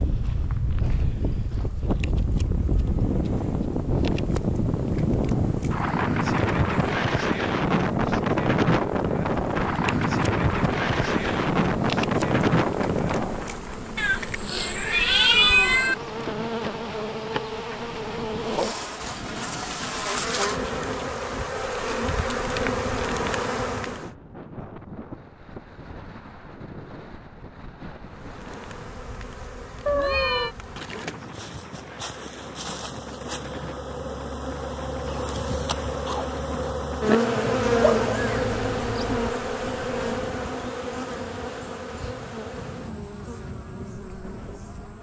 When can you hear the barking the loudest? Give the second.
38 s.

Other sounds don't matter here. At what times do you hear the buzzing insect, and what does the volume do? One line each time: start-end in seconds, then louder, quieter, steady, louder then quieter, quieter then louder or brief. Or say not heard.
0.0-24.1 louder
28.0-44.9 louder then quieter.